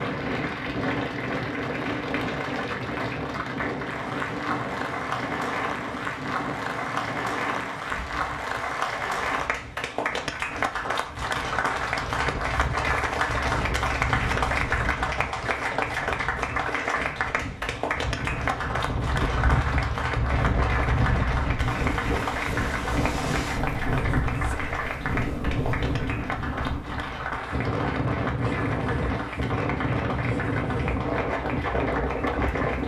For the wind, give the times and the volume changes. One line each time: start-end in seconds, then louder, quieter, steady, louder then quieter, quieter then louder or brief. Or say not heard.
0.0-32.8 quieter then louder.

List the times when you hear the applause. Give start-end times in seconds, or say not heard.
0.0-32.8.